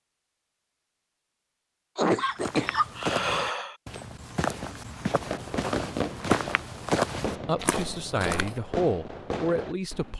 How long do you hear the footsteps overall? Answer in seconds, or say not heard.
6 s.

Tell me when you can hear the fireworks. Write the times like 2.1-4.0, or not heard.
5.1-10.1.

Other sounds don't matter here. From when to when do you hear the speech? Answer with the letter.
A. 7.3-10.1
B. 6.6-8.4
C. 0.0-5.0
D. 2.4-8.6
A.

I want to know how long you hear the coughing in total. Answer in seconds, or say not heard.
2 s.